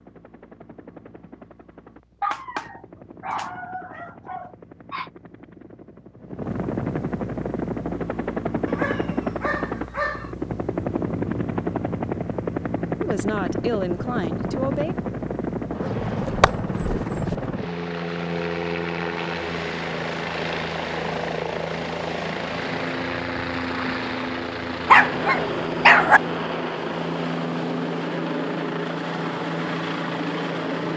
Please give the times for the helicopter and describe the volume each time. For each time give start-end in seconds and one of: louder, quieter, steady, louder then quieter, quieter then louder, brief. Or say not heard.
0.0-30.9 louder.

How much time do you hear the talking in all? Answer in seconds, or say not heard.
2 s.